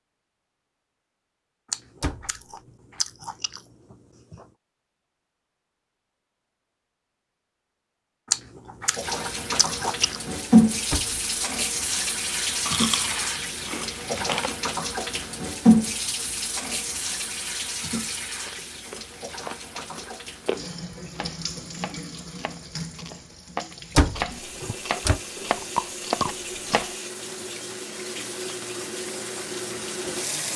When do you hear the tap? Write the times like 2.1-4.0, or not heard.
8.9-30.5.